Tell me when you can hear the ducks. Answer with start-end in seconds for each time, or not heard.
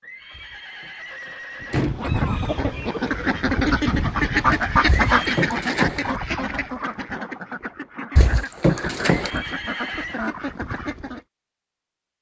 1.6-11.2.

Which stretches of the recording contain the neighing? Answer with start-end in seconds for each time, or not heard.
0.0-1.9, 4.9-5.5, 9.1-10.2.